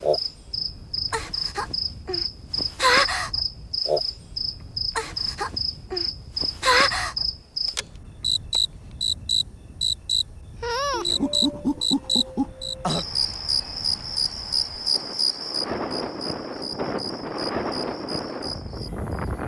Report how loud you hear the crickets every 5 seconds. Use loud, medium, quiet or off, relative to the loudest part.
loud, loud, loud, medium.